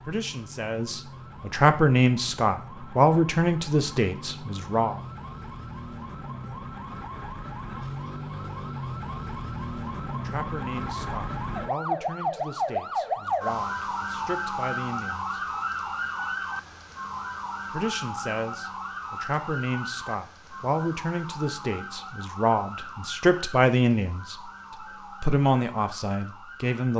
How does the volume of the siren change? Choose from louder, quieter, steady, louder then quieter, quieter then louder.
louder then quieter.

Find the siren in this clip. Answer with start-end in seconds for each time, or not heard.
0.0-26.9.